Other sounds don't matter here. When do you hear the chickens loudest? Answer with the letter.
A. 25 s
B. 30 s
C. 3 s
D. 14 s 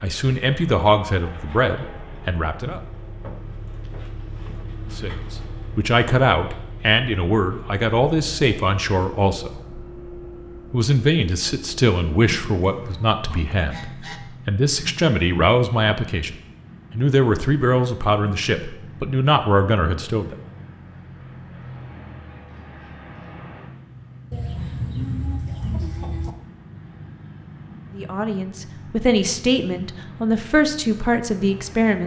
A.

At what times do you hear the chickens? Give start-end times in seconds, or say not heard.
12.8-14.2, 24.3-26.4.